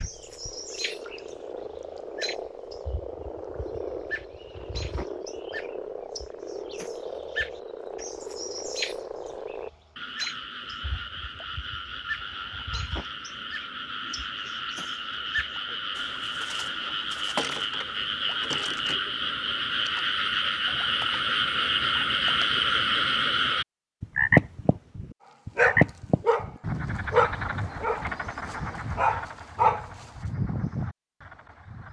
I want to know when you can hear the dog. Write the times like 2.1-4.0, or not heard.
25.6-26.5, 27.1-30.1.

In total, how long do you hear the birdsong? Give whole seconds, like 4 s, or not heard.
19 s.